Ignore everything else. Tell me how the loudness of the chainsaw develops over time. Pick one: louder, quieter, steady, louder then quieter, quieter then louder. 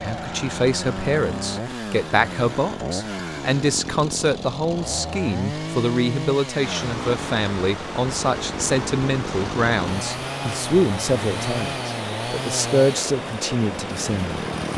steady.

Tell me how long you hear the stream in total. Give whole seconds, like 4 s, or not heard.
8 s.